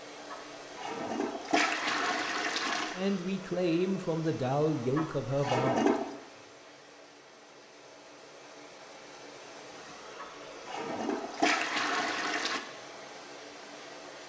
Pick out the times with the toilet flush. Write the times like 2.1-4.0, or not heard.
0.3-3.0, 5.0-6.2, 10.2-12.6.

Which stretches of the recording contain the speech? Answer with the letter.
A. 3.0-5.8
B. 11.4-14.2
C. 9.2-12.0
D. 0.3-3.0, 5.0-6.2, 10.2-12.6
A.